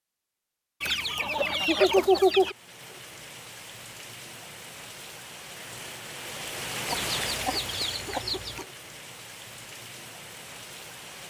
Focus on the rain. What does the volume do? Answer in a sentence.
The volume of the rain goes up, then down.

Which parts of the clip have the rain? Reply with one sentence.
You can hear the rain from 2.4 to 11.2 s.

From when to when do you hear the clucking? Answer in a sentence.
The clucking can be heard from 0.8 to 2.5 s and from 6.8 to 8.7 s.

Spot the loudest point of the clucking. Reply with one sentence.
The loudest moment of the clucking is at 2 seconds.